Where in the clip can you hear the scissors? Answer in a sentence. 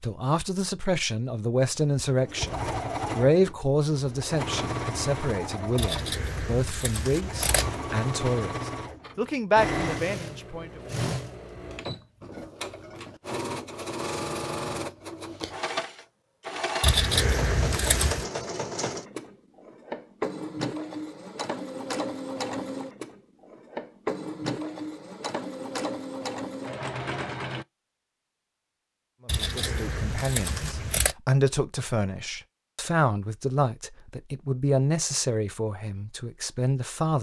The scissors can be heard from 5.8 to 7.8 s, from 16.8 to 18.2 s and from 29.2 to 31.1 s.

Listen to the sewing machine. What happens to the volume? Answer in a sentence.
The volume of the sewing machine stays about the same.